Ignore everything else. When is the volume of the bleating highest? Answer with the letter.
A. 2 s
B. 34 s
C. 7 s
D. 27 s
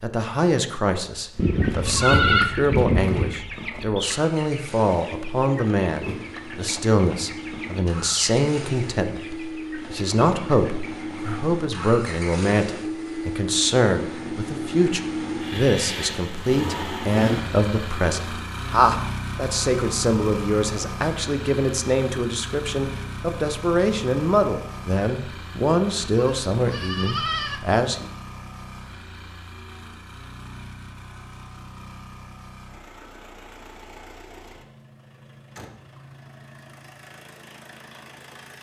A.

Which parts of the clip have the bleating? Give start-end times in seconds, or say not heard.
1.4-3.4, 26.0-27.6.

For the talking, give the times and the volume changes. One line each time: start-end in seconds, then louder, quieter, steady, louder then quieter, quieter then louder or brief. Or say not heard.
0.0-28.1 steady.